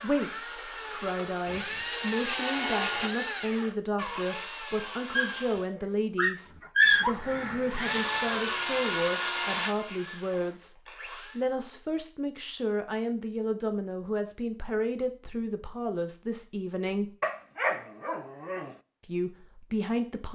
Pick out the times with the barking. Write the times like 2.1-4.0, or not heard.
5.2-7.2, 17.2-18.8.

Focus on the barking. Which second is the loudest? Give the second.
7 s.